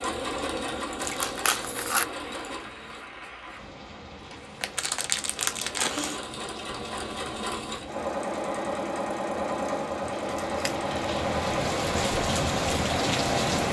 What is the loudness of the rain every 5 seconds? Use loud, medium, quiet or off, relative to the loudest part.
quiet, quiet, loud.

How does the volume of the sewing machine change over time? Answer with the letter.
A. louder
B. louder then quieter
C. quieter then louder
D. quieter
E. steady
C.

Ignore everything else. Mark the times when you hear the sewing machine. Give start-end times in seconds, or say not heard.
0.0-13.6.